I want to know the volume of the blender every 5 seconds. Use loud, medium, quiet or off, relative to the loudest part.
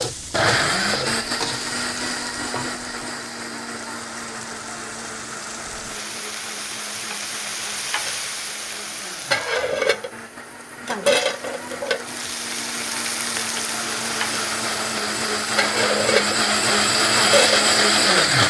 medium, quiet, quiet, loud.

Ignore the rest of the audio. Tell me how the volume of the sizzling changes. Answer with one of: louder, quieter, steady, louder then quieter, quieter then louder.
louder.